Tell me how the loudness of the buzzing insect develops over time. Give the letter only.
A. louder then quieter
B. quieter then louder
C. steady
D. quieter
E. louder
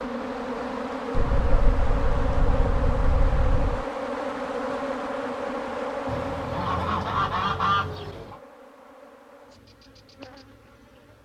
D.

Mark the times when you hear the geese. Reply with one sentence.
The geese can be heard from 1.1 to 3.9 s and from 6.0 to 8.3 s.